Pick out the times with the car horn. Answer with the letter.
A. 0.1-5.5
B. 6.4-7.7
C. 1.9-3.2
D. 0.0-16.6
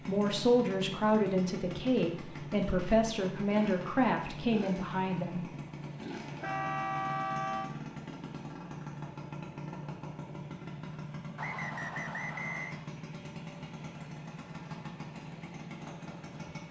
B.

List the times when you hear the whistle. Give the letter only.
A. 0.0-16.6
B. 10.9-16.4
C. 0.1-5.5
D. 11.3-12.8
D.